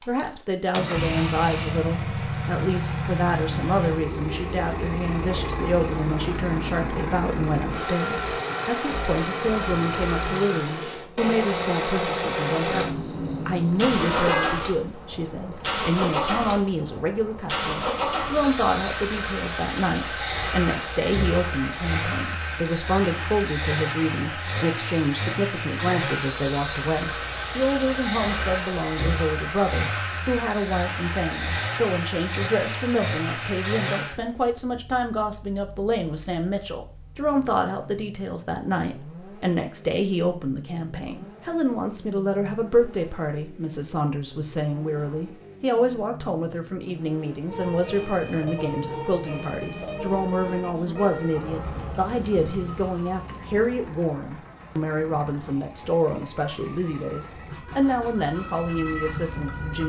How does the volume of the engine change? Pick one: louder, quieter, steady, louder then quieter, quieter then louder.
quieter.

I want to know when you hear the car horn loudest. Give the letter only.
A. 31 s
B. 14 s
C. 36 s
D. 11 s
B.